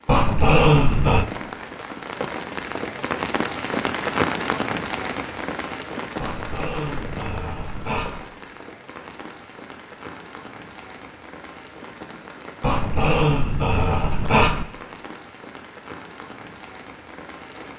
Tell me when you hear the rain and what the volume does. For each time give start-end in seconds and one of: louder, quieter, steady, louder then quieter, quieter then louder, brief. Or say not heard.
0.0-17.7 quieter.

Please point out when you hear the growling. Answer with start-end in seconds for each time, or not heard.
0.1-1.2, 6.2-8.2, 12.6-14.7.